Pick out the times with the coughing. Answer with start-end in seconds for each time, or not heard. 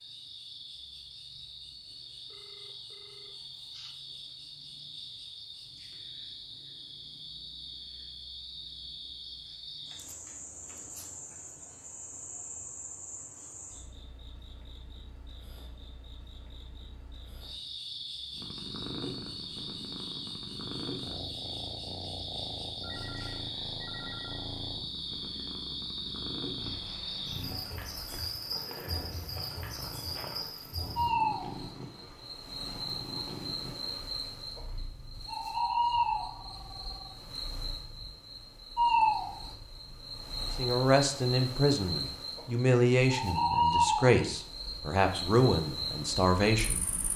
not heard.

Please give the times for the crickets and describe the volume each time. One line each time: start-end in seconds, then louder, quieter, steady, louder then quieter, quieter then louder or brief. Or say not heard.
0.0-47.1 louder.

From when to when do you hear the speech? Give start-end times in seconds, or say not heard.
40.5-46.9.